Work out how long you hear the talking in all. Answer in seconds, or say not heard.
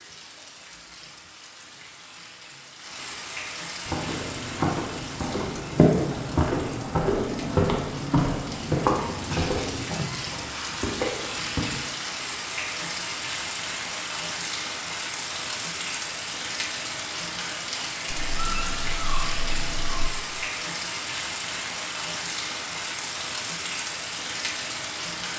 not heard.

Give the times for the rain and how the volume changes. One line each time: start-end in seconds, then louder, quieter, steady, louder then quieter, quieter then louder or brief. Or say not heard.
0.0-25.3 louder.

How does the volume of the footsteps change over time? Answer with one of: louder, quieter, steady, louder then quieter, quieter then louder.
louder then quieter.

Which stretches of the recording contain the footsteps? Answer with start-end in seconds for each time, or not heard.
3.9-11.7.